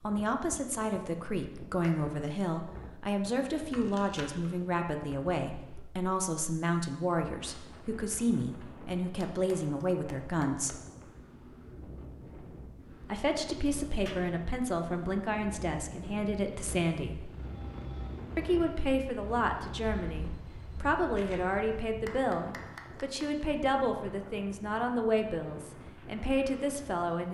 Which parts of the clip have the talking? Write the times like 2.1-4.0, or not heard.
0.0-10.8, 13.1-17.3, 18.4-27.2.